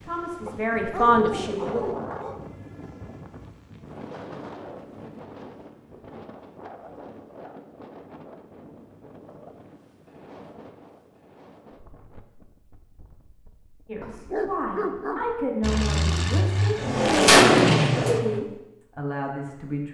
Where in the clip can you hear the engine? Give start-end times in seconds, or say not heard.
15.6-18.2.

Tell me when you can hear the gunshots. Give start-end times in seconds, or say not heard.
16.8-18.4.